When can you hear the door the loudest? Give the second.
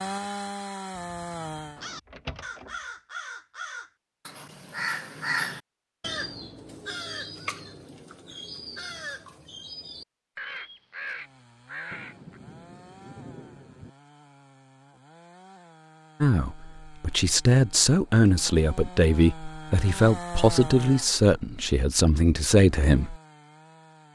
2 s.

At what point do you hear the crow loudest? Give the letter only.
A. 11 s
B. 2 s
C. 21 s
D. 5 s
D.